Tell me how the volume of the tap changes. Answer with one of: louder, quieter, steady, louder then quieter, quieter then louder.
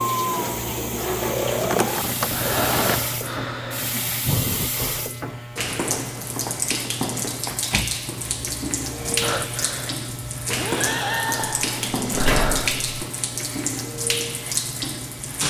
steady.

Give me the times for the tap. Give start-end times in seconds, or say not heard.
0.0-15.4.